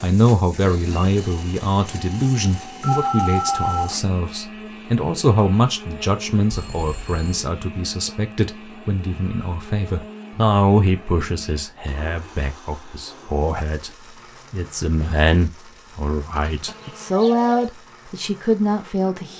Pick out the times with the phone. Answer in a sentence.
You can hear the phone from 2.8 to 4.0 s, from 6.5 to 7.5 s and from 16.4 to 17.7 s.